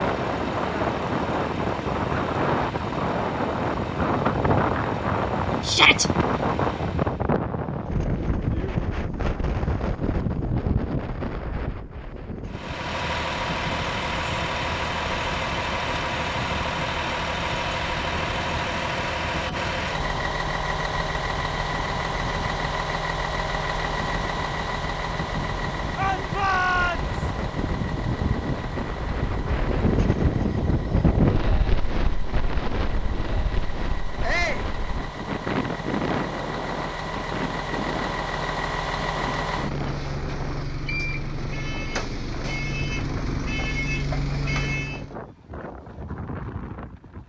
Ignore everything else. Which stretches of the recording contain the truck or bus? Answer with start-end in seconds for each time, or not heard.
0.0-7.3, 12.4-45.1.